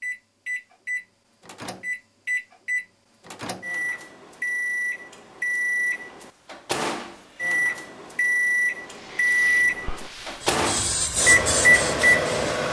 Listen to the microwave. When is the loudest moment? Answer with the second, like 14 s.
12 s.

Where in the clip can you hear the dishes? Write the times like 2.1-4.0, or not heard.
not heard.